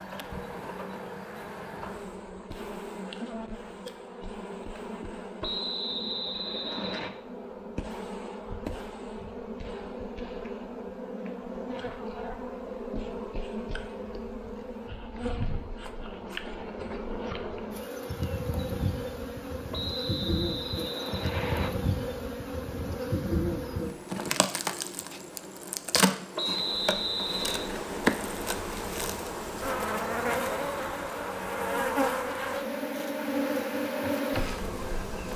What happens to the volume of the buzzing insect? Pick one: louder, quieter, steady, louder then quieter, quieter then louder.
louder.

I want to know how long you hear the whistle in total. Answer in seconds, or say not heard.
5 s.